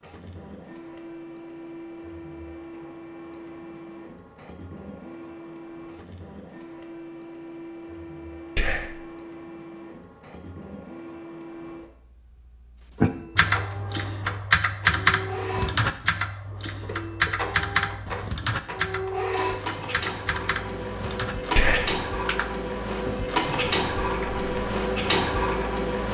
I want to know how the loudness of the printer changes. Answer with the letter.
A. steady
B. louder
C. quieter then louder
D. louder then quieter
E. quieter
B.